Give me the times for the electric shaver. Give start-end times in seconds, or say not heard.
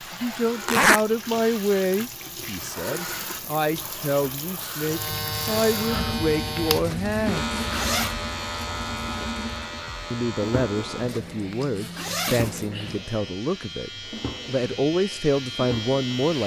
4.8-16.4.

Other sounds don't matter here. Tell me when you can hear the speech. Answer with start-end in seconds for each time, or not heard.
0.0-7.5, 10.1-16.4.